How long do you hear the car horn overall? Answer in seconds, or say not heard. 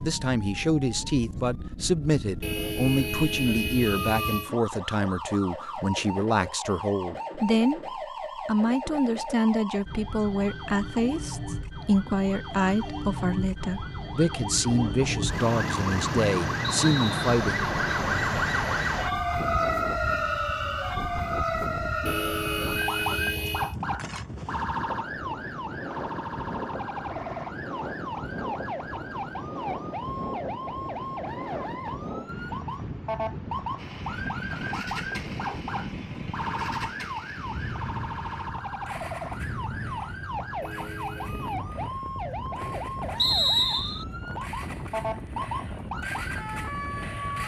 5 s.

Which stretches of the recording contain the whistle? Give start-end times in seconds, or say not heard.
16.6-17.3, 43.1-44.0.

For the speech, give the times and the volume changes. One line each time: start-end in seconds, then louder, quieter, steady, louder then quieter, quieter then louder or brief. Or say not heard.
0.0-17.6 steady.